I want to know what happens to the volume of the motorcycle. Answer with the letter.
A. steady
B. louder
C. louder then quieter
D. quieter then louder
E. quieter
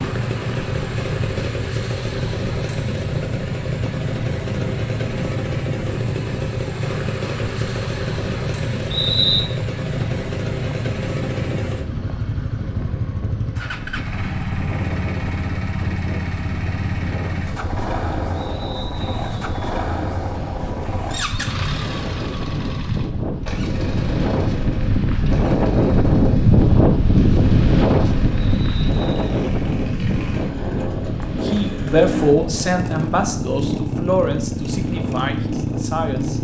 D.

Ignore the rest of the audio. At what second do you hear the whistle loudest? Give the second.
9 s.